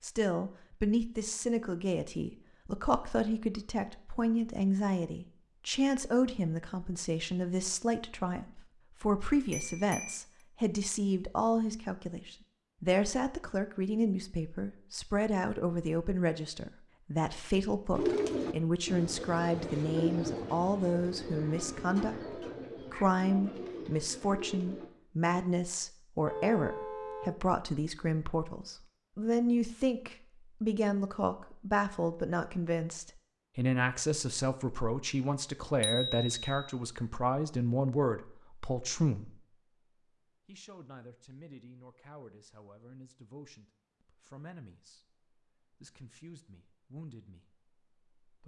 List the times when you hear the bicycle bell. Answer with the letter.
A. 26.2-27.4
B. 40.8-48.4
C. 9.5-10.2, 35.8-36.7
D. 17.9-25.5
C.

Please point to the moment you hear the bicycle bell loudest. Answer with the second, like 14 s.
36 s.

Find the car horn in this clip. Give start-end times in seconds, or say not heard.
26.2-27.4.